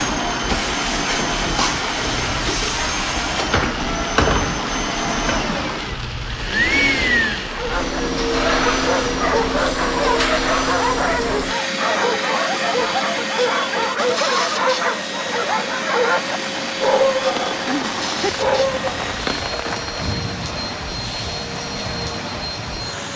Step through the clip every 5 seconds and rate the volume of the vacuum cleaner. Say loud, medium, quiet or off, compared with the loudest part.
loud, loud, loud, medium, medium.